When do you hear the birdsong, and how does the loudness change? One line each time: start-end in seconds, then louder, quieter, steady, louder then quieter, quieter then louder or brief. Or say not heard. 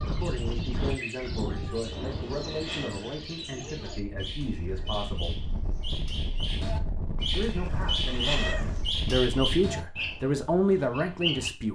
0.0-11.5 louder.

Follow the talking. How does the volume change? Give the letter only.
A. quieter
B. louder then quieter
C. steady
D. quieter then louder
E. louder
E.